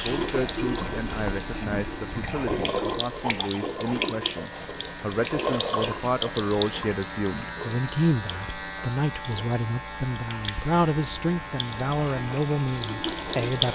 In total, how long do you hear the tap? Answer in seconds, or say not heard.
14 s.